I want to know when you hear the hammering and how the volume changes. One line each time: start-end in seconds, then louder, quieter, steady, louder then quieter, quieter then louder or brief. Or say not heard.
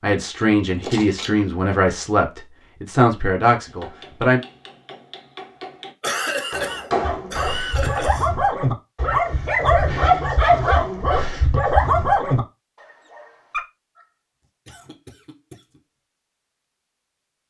3.6-8.0 louder.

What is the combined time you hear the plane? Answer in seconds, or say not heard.
not heard.